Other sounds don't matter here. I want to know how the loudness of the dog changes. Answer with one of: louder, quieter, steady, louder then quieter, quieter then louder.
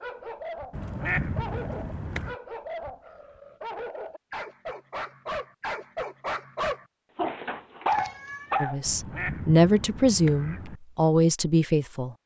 louder.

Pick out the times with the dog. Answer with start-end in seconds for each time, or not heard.
0.0-8.8.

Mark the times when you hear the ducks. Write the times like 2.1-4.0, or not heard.
0.7-2.4, 8.8-10.8.